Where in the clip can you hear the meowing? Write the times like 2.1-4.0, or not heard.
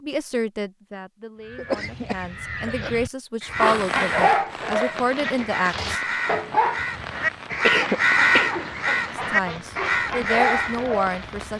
not heard.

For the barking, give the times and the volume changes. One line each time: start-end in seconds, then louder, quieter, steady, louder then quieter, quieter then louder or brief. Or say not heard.
3.5-11.2 quieter then louder.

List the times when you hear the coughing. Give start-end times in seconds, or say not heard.
1.6-2.9, 7.5-8.6.